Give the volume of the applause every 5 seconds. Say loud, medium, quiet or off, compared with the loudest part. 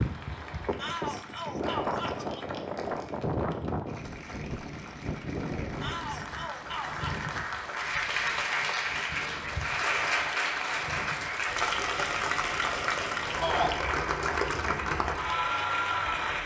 quiet, loud, loud, loud.